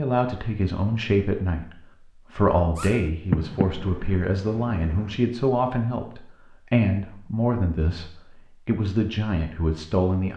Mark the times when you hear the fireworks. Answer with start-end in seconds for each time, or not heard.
2.8-5.2.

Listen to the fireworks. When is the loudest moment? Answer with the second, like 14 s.
3 s.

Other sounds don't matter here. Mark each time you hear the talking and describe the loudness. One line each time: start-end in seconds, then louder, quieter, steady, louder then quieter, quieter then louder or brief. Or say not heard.
0.0-10.3 steady.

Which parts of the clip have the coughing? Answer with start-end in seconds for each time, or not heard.
not heard.